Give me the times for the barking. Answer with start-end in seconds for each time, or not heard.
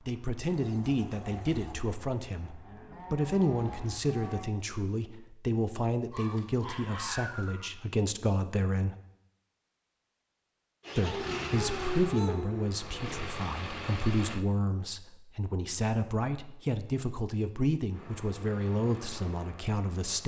6.1-7.7, 11.0-12.7.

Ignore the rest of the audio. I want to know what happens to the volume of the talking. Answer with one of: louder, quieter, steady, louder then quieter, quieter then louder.
steady.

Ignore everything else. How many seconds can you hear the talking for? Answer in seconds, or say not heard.
18 s.